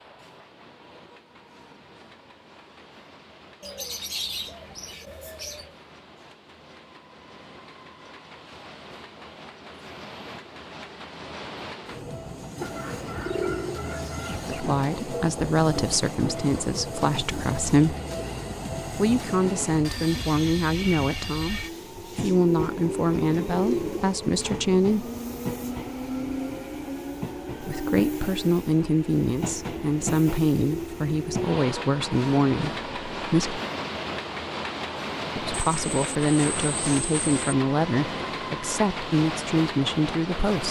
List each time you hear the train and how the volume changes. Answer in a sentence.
You can hear the train from 0.0 to 40.6 s, getting louder.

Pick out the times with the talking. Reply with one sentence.
You can hear the talking from 14.4 to 17.9 s, from 18.9 to 25.1 s, from 27.6 to 33.6 s and from 35.4 to 40.6 s.